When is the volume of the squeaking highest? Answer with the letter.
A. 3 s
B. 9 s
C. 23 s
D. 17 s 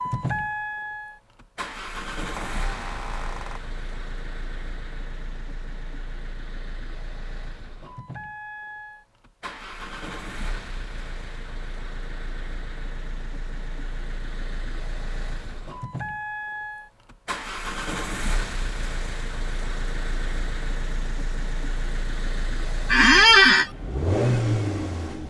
C.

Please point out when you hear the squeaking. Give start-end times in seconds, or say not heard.
2.1-3.6, 22.9-23.7.